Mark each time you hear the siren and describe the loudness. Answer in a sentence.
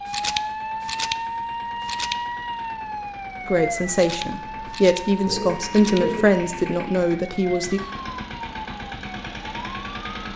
You can hear the siren from 0.0 to 10.1 s, getting quieter.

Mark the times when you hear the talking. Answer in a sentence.
You can hear the talking from 3.5 to 7.8 s.